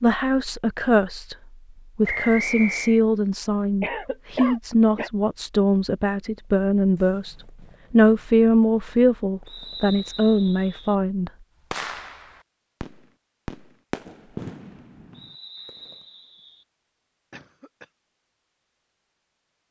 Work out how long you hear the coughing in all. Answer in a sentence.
You can hear the coughing for 2 seconds altogether.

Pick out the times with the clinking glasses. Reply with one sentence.
The clinking glasses can't be heard in this clip.